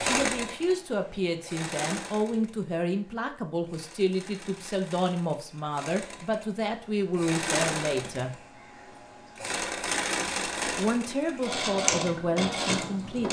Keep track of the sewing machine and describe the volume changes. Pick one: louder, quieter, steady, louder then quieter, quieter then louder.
quieter then louder.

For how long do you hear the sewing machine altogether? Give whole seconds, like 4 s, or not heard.
13 s.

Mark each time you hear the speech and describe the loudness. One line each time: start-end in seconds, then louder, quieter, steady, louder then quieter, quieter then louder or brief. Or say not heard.
0.0-8.3 steady
10.8-13.2 brief.